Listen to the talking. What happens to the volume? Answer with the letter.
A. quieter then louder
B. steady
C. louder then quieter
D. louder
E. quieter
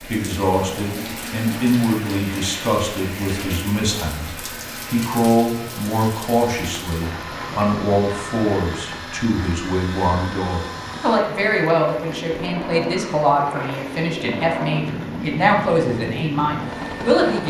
B.